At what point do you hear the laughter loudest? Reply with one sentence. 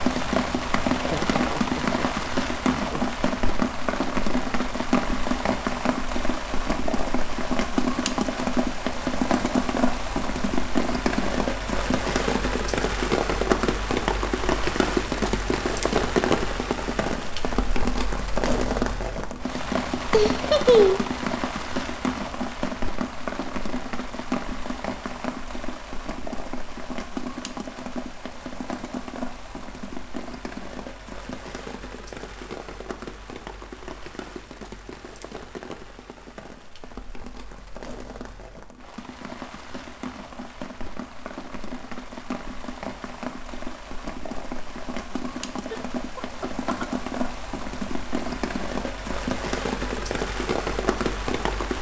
The volume of the laughter peaks at 21 seconds.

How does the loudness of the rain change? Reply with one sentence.
The volume of the rain goes down, then up.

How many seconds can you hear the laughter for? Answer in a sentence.
You can hear the laughter for 4 seconds altogether.